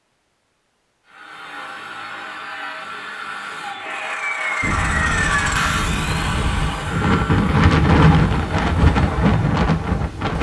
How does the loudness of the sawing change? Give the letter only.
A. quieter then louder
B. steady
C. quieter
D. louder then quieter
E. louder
D.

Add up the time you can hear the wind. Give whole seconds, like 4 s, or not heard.
6 s.